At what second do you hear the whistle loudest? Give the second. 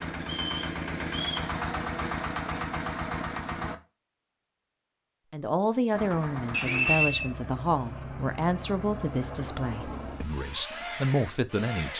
7 s.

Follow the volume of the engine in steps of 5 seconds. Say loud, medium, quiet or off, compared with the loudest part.
loud, medium, medium.